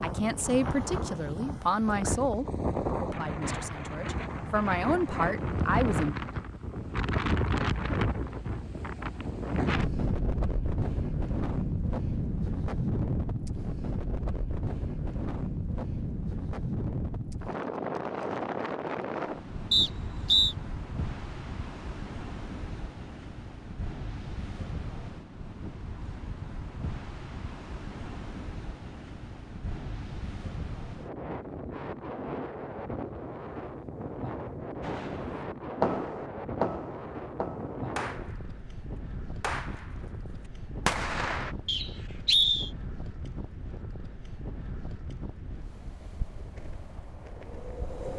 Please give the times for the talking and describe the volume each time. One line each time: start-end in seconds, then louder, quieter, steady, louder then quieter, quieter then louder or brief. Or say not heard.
0.0-6.2 quieter then louder.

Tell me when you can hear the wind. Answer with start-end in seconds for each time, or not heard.
0.0-48.1.